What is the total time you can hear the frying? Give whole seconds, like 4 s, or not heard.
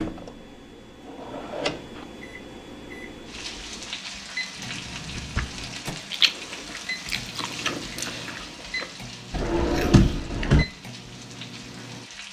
9 s.